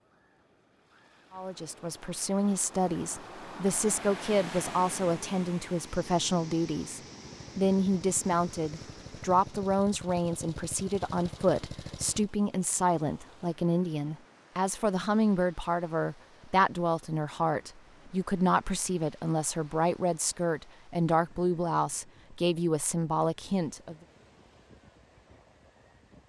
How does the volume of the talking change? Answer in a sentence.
The loudness of the talking stays about the same.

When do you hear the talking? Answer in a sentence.
You can hear the talking from 1.3 to 23.9 s.